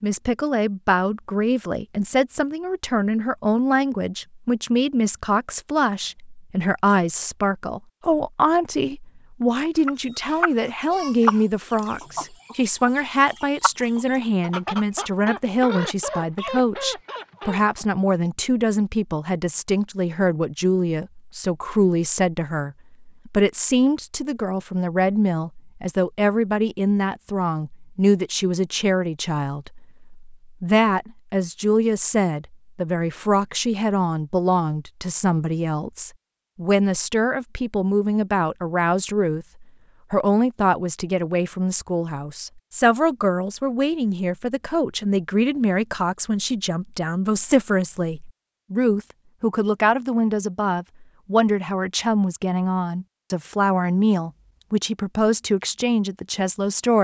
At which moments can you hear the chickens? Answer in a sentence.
You can hear the chickens from 9.8 to 17.9 s.